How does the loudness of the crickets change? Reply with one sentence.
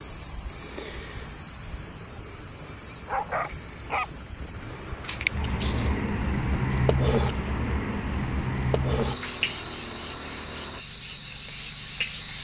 The loudness of the crickets goes up, then down.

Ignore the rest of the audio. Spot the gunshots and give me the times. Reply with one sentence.
You can hear the gunshots from 5.0 to 6.0 s.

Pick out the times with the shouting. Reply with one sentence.
The shouting can't be heard in this clip.